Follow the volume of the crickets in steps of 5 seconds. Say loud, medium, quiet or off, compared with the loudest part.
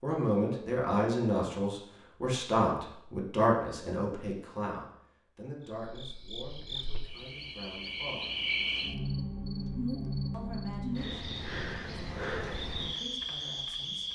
off, loud, loud.